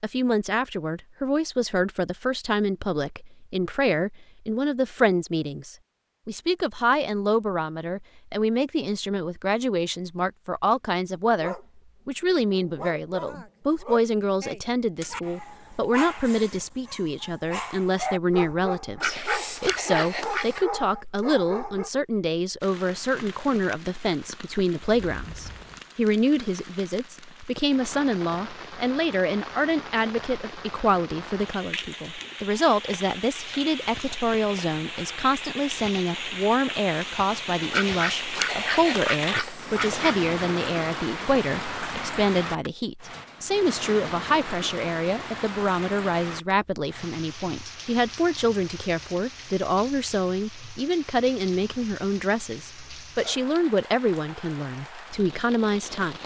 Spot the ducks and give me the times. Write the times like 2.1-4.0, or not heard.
19.0-20.6, 37.7-40.1.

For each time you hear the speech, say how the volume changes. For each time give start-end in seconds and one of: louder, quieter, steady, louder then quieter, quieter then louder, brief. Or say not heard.
0.0-56.2 steady.